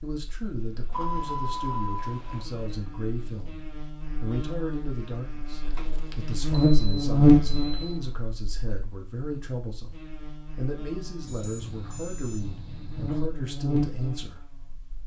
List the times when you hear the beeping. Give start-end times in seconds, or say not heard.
0.9-2.5, 5.7-8.0, 11.2-13.3.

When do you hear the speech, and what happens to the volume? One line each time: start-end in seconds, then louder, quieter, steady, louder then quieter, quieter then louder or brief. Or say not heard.
0.0-14.4 steady.